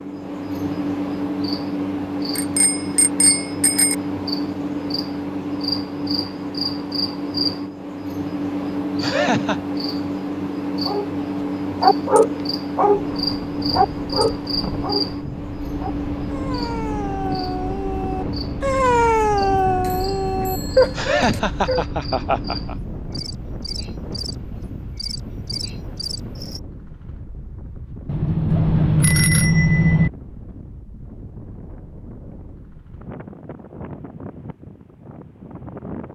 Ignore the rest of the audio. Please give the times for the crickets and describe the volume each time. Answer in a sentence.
The crickets can be heard from 0.0 to 26.6 s, getting quieter.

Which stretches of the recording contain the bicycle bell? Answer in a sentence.
The bicycle bell can be heard from 2.4 to 4.0 s, from 19.6 to 21.4 s and from 28.1 to 30.1 s.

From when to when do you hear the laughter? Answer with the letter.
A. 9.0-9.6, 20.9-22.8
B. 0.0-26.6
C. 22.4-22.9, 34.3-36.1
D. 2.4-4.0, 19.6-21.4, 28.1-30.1
A.